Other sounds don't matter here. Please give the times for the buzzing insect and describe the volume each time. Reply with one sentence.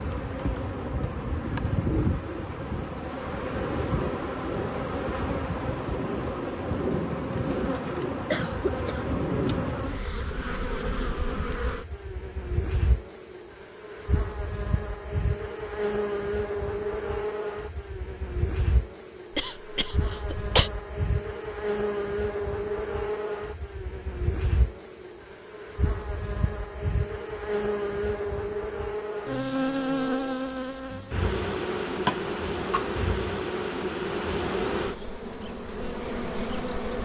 You can hear the buzzing insect from 0.0 to 37.0 s, at a steady volume.